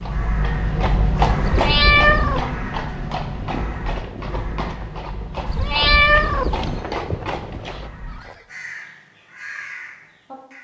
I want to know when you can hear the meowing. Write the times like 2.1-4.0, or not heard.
1.4-2.5, 5.5-6.8.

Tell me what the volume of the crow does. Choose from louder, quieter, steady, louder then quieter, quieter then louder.
quieter.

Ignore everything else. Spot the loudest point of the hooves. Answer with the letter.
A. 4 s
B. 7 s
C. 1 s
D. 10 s
C.